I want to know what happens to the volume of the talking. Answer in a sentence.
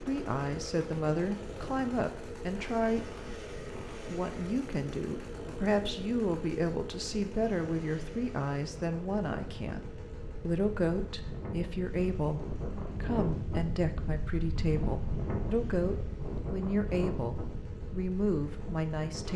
The volume of the talking stays about the same.